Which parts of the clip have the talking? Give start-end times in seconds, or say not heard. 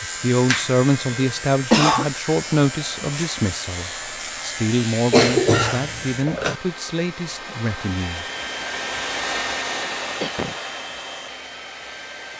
0.0-8.2.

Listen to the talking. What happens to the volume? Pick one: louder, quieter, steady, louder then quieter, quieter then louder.
quieter.